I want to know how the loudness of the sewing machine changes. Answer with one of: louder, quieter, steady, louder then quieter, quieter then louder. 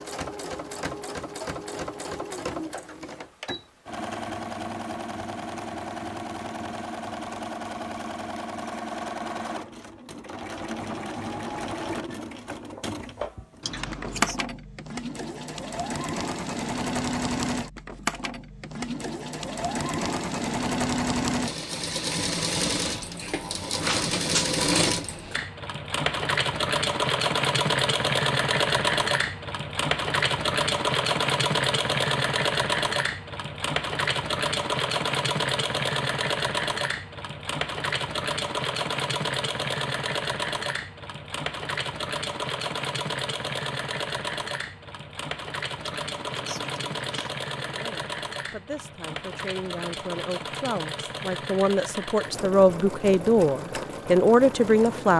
louder then quieter.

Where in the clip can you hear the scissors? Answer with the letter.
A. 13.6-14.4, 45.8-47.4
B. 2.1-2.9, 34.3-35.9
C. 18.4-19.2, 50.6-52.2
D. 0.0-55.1
A.